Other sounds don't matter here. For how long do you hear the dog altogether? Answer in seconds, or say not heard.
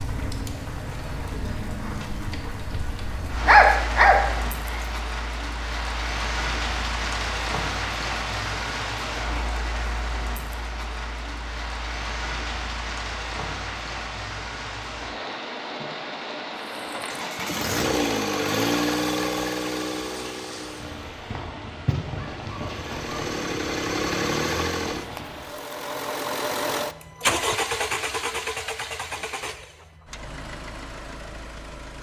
3 s.